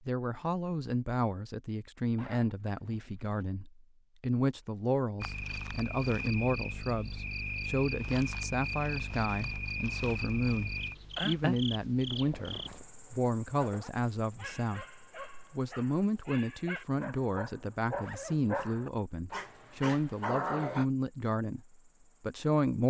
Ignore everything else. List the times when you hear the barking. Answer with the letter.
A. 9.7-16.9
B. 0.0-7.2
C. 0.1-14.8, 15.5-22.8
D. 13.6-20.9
D.